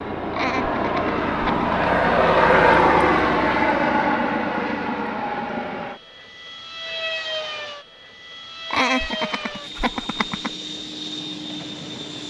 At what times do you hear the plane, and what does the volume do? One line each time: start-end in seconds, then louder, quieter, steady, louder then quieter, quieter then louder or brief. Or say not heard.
0.0-12.2 quieter.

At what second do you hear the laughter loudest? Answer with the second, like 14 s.
9 s.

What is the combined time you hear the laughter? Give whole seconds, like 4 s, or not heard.
3 s.